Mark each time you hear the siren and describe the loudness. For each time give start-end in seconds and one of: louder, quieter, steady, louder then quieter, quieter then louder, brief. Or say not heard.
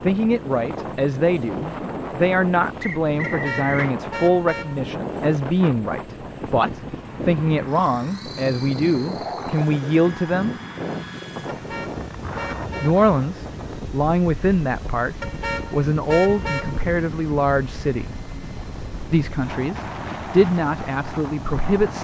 not heard.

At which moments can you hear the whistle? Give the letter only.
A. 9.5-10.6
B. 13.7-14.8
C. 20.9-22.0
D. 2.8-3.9
D.